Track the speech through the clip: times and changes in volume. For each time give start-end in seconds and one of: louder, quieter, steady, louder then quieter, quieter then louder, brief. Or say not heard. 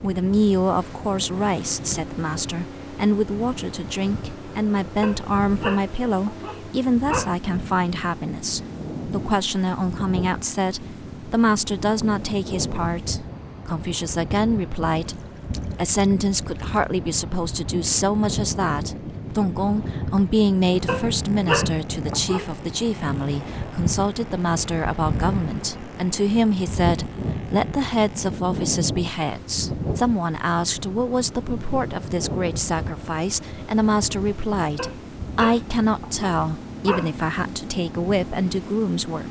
0.0-39.2 steady.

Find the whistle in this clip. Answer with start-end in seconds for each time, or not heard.
not heard.